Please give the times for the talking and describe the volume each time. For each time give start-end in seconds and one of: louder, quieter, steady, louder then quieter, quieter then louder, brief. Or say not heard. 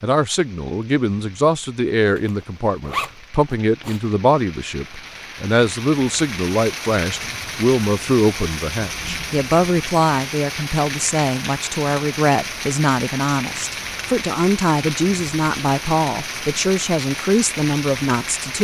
0.0-18.6 steady.